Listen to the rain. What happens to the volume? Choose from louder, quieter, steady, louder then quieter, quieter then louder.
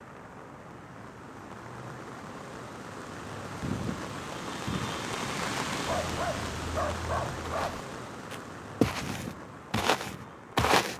louder then quieter.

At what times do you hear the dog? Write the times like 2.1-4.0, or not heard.
5.8-7.8.